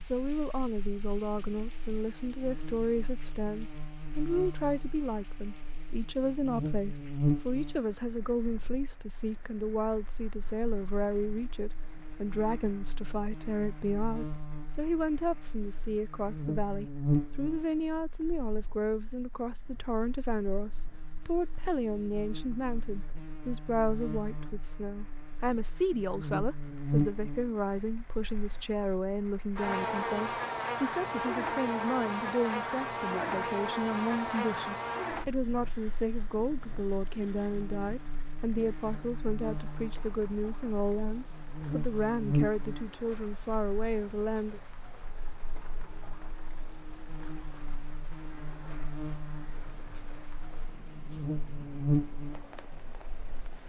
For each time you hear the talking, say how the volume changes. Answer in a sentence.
You can hear the talking from 0.0 to 44.6 s, at a steady volume.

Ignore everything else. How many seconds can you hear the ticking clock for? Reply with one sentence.
The ticking clock can't be heard in this clip.